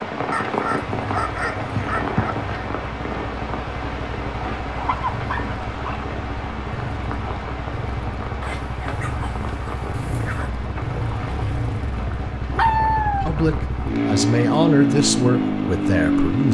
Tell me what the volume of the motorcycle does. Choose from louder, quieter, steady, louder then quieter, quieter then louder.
louder.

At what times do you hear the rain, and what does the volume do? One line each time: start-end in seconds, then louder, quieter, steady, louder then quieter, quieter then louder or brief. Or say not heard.
0.0-16.4 quieter.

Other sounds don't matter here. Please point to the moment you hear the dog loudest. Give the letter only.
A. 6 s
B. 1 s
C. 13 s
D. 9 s
C.